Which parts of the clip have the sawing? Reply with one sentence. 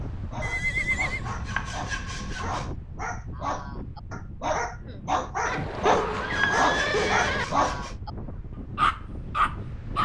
The sawing can be heard from 0.9 to 2.8 s and from 5.8 to 8.0 s.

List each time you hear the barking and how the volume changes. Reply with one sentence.
You can hear the barking from 0.0 to 8.1 s, getting louder; and briefly from 8.8 to 10.0 s.